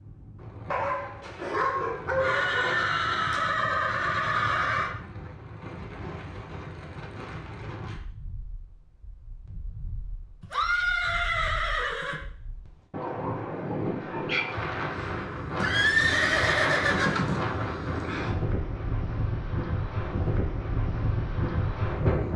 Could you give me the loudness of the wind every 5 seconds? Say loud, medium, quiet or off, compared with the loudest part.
quiet, quiet, medium, loud, loud.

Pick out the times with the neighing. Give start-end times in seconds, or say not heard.
2.1-4.9, 10.4-12.2, 15.6-17.4.